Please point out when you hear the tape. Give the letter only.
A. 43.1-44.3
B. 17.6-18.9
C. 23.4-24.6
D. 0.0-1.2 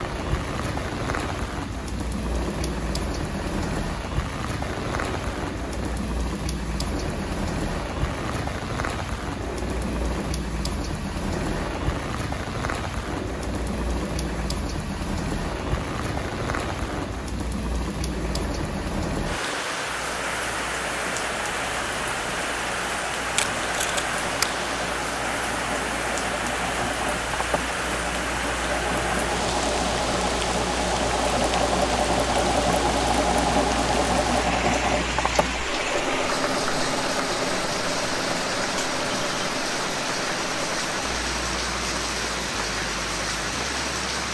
C.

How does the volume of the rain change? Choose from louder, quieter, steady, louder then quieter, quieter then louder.
steady.